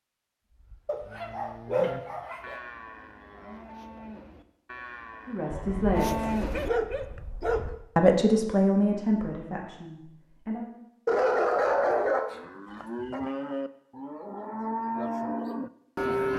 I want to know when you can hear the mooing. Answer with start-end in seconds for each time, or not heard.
0.7-7.2, 12.3-16.3.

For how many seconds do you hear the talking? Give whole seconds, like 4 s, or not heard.
4 s.